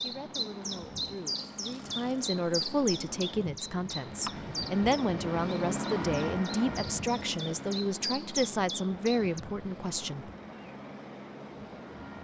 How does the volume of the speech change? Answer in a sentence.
The loudness of the speech goes up.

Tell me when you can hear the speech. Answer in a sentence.
You can hear the speech from 0.0 to 10.3 s.